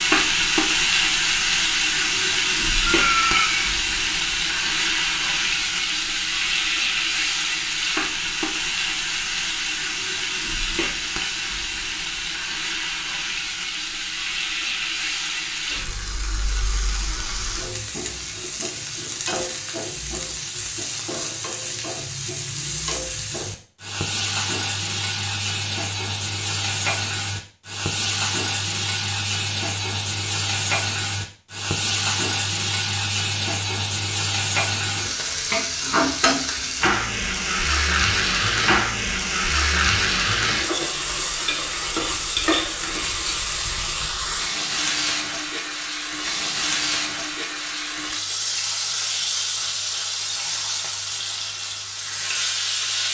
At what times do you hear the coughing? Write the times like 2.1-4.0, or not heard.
2.9-3.6.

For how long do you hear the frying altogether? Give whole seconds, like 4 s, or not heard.
53 s.